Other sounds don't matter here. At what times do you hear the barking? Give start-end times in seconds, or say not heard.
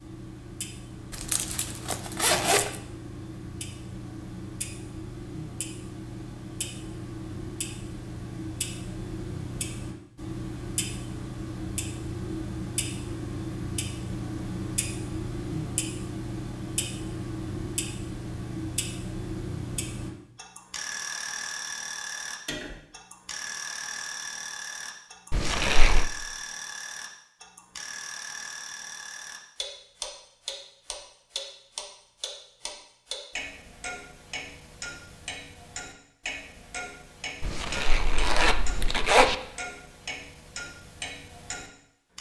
not heard.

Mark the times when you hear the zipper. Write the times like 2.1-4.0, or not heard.
1.1-2.8, 25.3-26.1, 37.4-39.4.